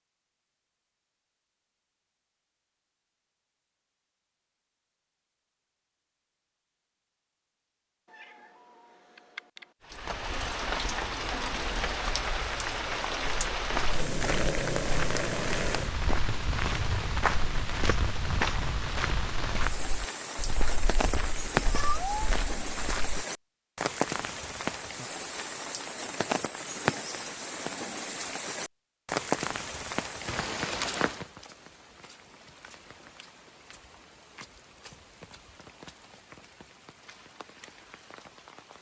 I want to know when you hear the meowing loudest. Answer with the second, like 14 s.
22 s.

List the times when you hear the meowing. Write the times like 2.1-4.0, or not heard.
8.1-9.7, 21.6-22.1.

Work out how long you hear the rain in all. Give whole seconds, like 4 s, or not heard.
29 s.